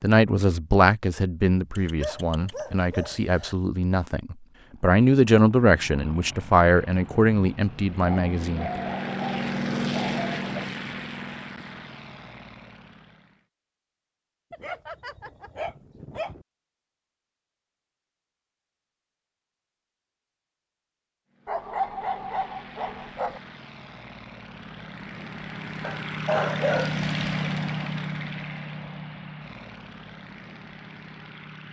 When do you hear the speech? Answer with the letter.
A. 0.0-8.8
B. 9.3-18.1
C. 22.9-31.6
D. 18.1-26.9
A.